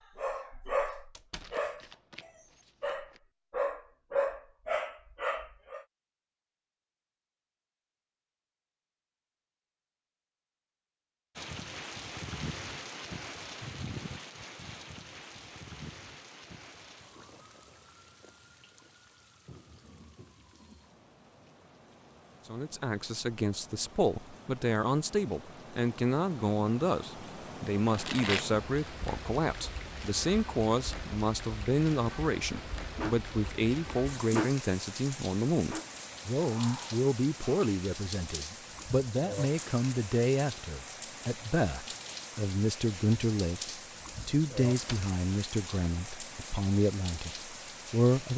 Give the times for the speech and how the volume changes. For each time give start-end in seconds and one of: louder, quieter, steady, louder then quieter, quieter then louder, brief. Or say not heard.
22.4-48.3 steady.